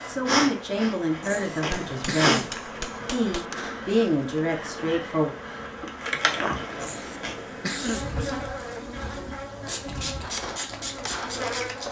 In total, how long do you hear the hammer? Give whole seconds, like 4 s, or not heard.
4 s.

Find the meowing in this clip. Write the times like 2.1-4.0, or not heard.
not heard.